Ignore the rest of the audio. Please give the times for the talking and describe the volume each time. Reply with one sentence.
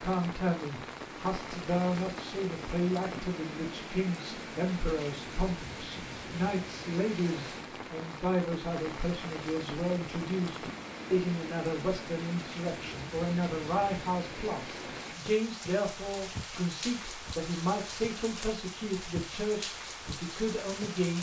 You can hear the talking from 0.0 to 21.1 s, at a steady volume.